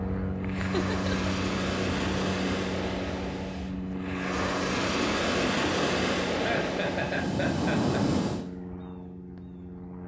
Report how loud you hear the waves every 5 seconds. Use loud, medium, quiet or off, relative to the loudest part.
medium, loud.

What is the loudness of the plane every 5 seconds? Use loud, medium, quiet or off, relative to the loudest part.
loud, medium.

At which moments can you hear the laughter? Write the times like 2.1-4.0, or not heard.
0.6-1.3, 6.3-8.0.